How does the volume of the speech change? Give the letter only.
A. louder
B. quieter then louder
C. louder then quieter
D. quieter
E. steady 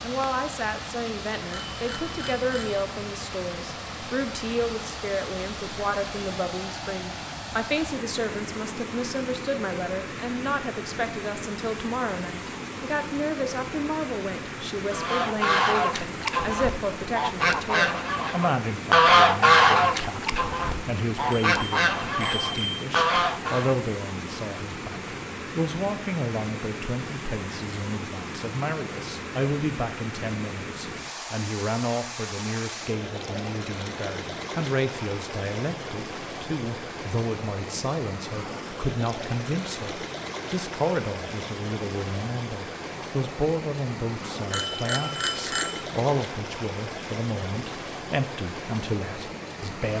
E.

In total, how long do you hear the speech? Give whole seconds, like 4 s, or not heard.
50 s.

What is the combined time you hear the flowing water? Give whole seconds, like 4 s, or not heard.
50 s.